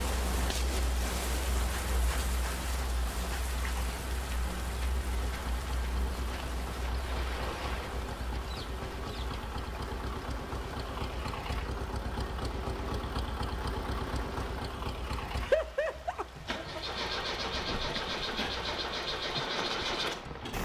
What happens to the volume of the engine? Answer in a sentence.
The loudness of the engine goes up.